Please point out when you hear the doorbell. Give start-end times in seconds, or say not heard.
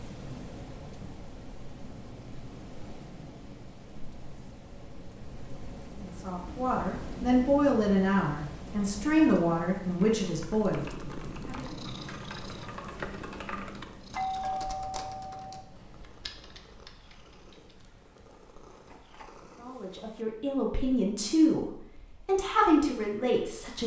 14.1-15.7.